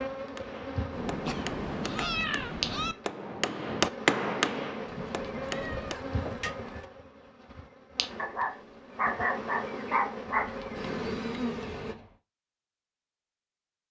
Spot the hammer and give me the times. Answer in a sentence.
You can hear the hammer from 0.3 to 6.8 s.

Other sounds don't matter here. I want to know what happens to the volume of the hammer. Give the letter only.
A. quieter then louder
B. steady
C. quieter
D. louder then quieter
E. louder
D.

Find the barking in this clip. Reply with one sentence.
You can hear the barking from 8.2 to 10.6 s.